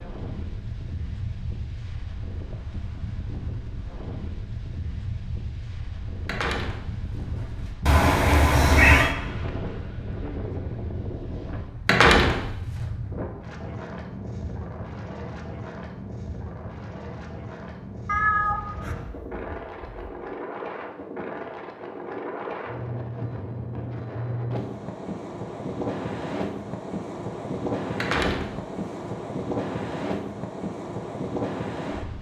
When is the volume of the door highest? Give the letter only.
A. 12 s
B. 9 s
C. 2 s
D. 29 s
A.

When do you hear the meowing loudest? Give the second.
9 s.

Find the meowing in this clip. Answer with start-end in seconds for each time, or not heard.
7.8-9.2, 18.1-20.1.